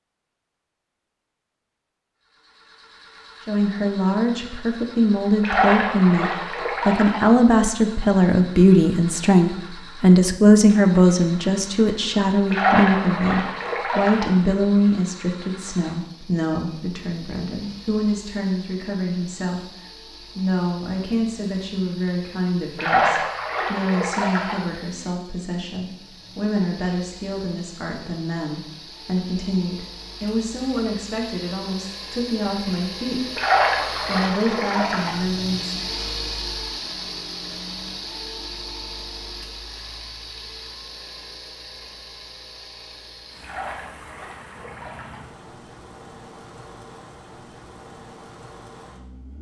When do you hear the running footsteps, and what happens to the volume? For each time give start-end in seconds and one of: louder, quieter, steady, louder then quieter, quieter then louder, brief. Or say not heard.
not heard.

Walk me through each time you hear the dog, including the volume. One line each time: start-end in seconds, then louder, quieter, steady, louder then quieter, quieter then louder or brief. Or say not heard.
not heard.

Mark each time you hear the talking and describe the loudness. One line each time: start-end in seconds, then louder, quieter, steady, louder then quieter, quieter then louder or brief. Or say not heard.
3.5-33.4 quieter
34.0-35.8 brief.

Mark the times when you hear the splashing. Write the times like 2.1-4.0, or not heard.
5.4-7.2, 12.5-14.3, 22.8-24.6, 33.4-35.1, 43.4-45.2.